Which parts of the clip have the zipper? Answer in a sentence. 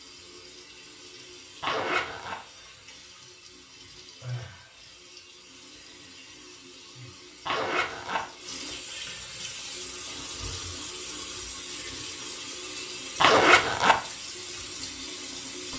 The zipper can be heard from 1.6 to 2.4 s, from 7.5 to 8.2 s and from 13.2 to 14.0 s.